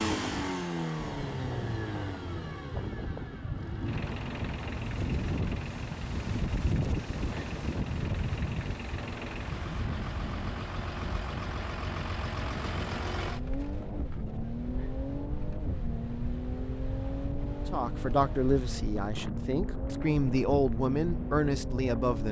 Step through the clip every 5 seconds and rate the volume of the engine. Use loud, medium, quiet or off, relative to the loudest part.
loud, medium, loud, loud, loud.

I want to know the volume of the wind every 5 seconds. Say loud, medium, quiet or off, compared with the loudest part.
medium, loud, medium, medium, medium.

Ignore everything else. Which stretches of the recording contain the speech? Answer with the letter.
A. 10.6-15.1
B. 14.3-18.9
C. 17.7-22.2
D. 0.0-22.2
C.